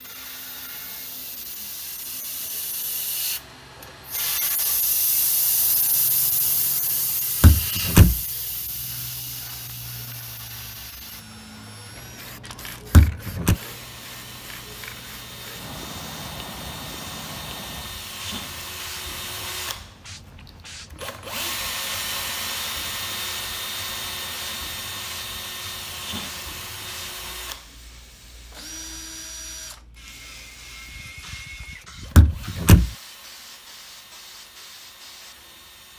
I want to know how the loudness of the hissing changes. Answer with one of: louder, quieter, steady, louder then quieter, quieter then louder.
quieter.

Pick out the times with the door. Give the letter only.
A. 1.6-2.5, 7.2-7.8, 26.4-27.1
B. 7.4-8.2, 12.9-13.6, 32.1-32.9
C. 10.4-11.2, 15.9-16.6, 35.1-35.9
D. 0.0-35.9
B.